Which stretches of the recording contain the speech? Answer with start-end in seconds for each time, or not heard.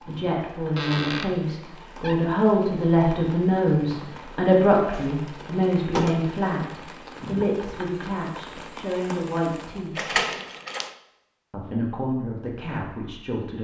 0.1-10.2, 11.5-13.5.